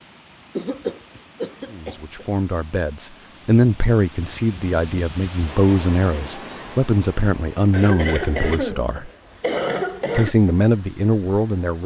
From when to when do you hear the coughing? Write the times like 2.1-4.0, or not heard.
0.6-2.2, 7.7-10.3.